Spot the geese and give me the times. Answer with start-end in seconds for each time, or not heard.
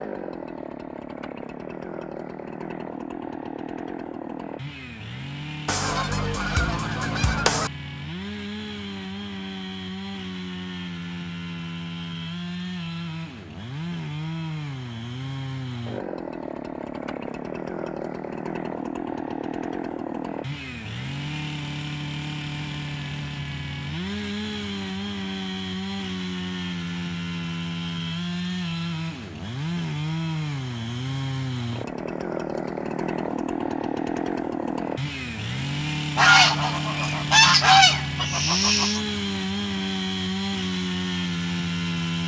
5.7-7.7, 36.1-39.0.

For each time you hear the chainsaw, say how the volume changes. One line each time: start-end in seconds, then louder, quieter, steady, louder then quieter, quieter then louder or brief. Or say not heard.
0.0-42.2 louder.